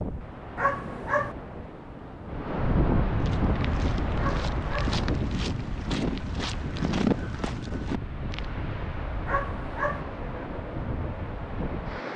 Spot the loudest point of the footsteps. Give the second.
7 s.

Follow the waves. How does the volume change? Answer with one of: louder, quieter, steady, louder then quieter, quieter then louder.
louder then quieter.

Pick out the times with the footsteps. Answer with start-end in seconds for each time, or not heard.
3.2-8.4.